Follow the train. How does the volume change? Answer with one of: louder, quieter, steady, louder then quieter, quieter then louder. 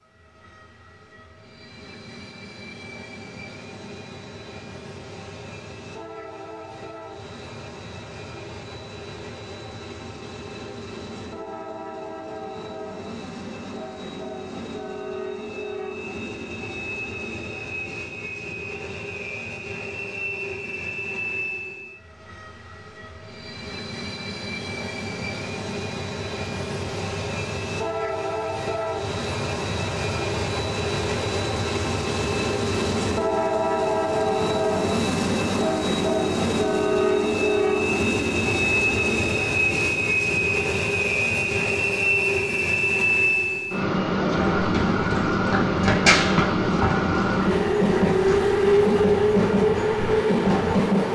louder.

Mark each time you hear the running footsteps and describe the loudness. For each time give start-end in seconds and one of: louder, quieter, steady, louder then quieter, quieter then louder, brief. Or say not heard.
44.2-50.8 louder then quieter.